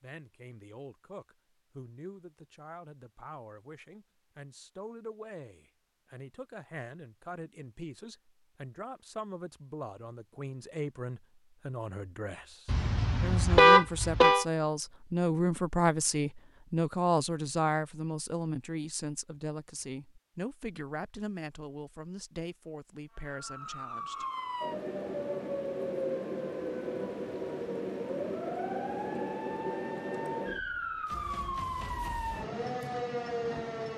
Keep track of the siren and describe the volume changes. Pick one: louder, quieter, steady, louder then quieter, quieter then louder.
steady.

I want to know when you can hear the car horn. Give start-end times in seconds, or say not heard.
12.7-14.4.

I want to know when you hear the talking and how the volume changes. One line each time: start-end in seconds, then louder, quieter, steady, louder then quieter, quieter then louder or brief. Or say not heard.
0.0-24.2 louder then quieter.